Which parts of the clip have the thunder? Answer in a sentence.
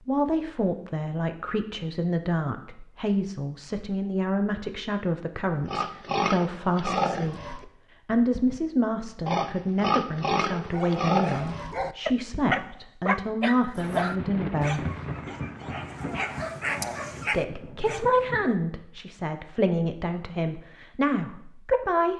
The thunder can be heard from 13.8 to 18.4 s.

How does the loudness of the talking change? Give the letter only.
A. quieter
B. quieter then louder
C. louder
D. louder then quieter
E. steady
E.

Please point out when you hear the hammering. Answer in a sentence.
The hammering can't be heard in this clip.